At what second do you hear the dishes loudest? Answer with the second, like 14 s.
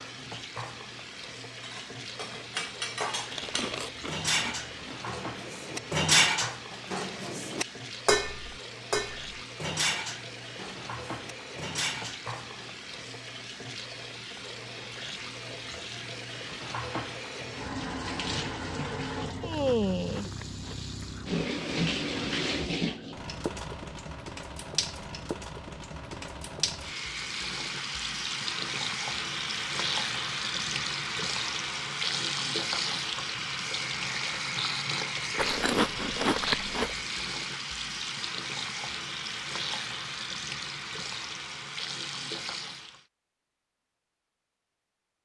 6 s.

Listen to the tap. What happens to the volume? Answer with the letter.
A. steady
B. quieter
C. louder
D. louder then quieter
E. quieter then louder
C.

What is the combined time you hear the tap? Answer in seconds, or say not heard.
43 s.